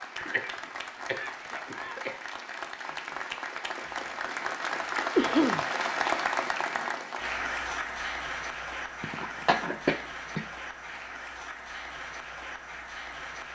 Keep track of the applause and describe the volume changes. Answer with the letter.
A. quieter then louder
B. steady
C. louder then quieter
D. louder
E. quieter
C.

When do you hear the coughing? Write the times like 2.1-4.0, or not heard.
0.1-2.2, 5.2-5.7, 9.0-10.4.